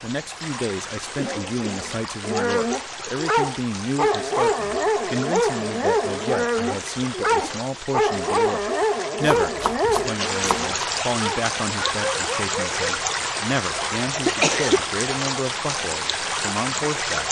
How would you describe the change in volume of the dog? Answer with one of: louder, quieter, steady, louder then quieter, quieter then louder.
quieter.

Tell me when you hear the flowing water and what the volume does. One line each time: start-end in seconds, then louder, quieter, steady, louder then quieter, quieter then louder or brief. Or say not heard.
0.0-17.2 louder.